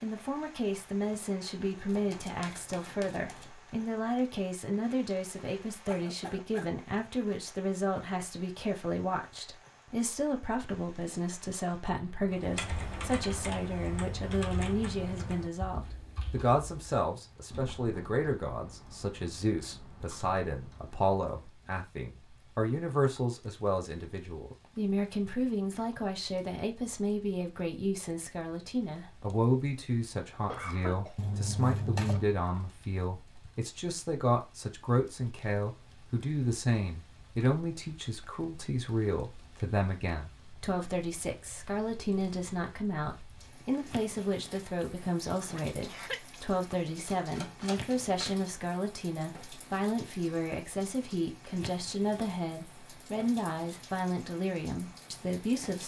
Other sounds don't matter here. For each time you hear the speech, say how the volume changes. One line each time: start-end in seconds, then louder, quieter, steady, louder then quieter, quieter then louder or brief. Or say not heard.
0.0-55.8 steady.